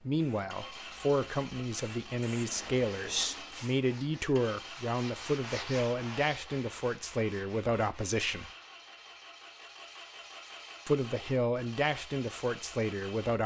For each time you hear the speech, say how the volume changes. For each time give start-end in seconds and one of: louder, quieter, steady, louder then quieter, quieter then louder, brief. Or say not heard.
0.0-8.5 steady
10.8-13.4 brief.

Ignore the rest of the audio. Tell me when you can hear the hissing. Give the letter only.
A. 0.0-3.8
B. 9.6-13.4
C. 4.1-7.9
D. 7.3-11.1
A.